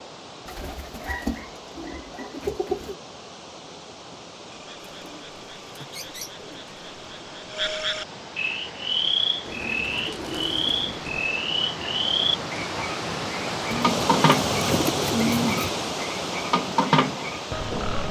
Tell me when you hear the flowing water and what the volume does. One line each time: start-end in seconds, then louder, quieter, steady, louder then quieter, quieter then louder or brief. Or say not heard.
0.0-18.0 louder.